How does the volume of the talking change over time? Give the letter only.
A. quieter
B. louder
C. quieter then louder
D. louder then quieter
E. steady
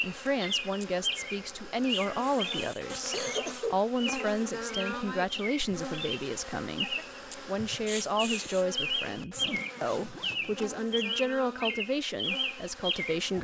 E.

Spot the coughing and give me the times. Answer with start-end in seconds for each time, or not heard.
1.9-3.8, 7.8-8.7.